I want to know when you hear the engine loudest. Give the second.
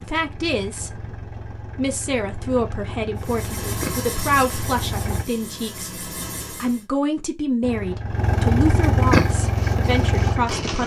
9 s.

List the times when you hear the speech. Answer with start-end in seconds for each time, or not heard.
0.0-0.9, 1.8-10.8.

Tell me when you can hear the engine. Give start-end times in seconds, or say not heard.
0.0-5.2, 7.6-10.8.